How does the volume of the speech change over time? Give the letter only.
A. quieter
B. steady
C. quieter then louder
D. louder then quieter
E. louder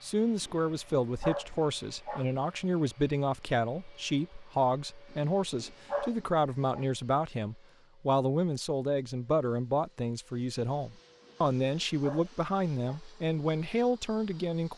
B.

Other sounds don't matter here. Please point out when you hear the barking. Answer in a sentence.
The barking can be heard from 0.4 to 2.2 s, from 5.1 to 6.8 s and from 11.2 to 13.0 s.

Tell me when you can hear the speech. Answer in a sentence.
The speech can be heard from 0.0 to 14.7 s.